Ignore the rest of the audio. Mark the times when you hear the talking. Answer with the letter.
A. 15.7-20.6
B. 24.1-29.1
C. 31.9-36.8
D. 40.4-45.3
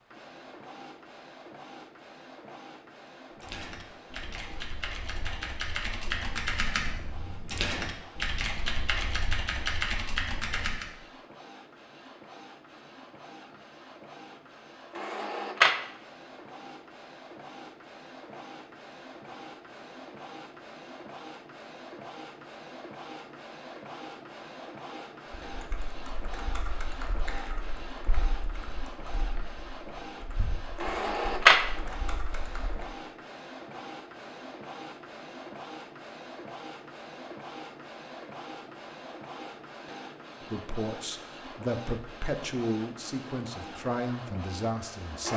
D.